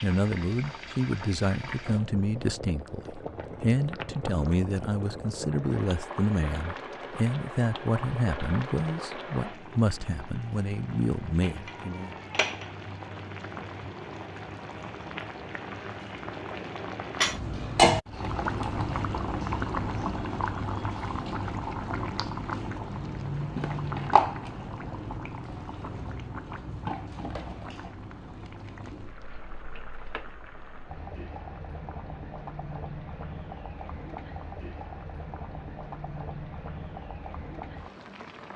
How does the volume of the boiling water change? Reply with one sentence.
The loudness of the boiling water goes up, then down.